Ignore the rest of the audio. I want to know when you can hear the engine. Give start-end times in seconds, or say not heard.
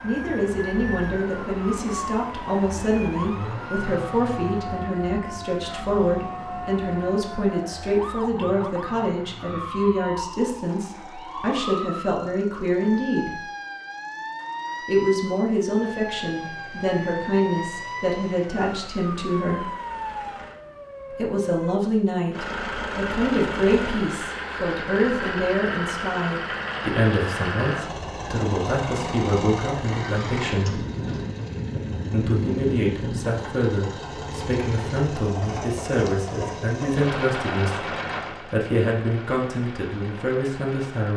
0.0-20.6, 22.3-41.1.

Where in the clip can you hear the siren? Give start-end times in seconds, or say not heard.
0.0-21.8.